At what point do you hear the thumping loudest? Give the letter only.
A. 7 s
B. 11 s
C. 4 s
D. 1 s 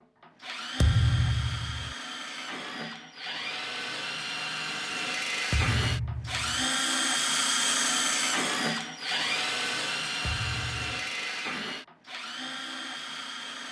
D.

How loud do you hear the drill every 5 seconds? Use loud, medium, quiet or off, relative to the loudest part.
medium, loud, medium.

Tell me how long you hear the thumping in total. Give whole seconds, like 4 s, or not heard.
3 s.